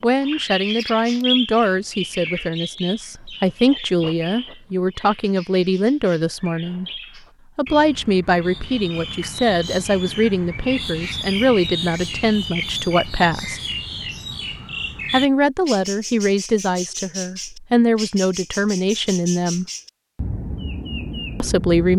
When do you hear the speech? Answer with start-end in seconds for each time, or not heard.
0.0-6.8, 7.5-13.6, 15.1-19.6, 21.4-21.9.